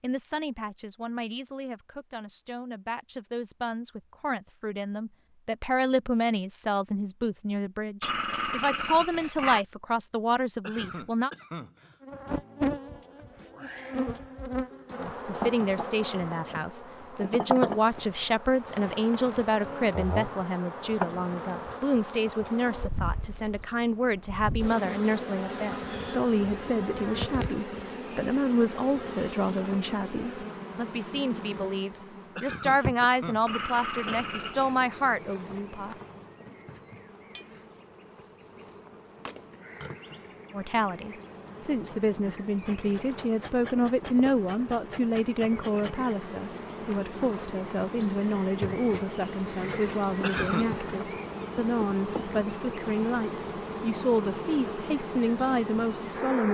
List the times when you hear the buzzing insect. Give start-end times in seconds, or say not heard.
12.0-56.4.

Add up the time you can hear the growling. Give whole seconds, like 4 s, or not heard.
3 s.